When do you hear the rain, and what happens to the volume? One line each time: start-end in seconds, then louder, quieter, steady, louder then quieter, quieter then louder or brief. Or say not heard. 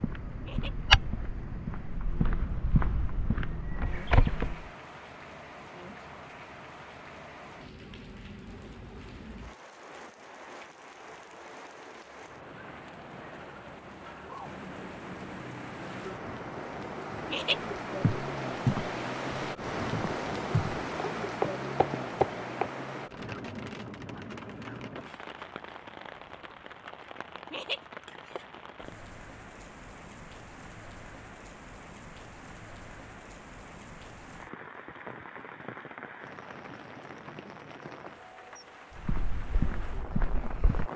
0.0-40.9 louder then quieter.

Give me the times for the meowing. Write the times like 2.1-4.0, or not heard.
not heard.